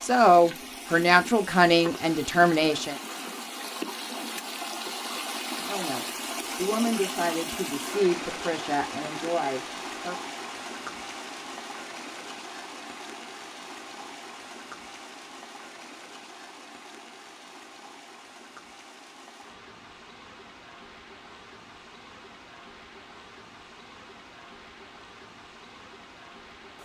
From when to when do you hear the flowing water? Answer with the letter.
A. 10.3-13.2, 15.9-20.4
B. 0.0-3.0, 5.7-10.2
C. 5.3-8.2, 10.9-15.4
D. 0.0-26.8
D.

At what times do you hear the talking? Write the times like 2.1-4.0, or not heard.
0.0-3.0, 5.7-10.2.